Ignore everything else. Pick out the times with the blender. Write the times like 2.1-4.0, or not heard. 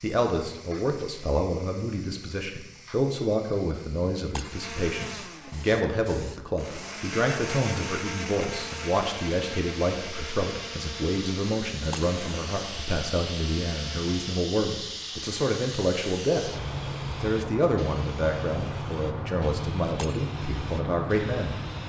4.5-14.5.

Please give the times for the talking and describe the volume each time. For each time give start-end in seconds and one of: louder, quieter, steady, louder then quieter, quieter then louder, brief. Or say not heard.
0.0-21.6 steady.